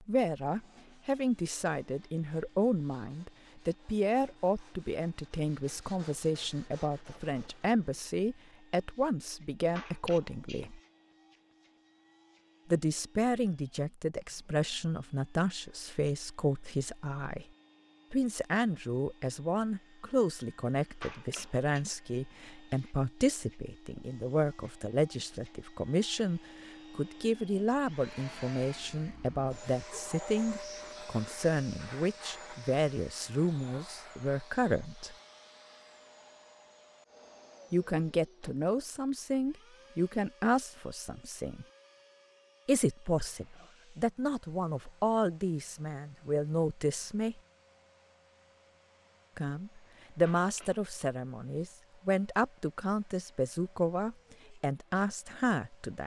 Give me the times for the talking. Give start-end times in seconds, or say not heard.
0.1-10.8, 12.7-17.4, 18.1-35.1, 37.7-41.6, 42.6-47.4, 49.4-56.0.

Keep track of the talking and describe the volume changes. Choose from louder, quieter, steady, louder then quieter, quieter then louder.
steady.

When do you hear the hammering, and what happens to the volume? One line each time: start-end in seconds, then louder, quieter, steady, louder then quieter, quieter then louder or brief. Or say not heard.
not heard.